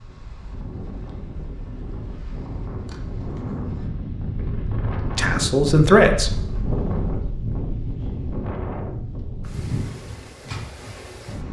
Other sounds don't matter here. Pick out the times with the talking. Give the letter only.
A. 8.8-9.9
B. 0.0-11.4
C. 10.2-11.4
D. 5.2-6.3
D.